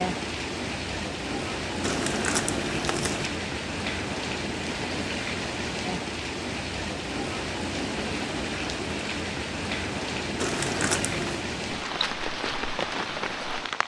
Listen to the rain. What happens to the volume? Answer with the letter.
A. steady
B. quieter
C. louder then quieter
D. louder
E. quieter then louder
A.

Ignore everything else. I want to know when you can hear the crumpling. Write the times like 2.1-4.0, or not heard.
1.8-3.3, 10.3-11.4.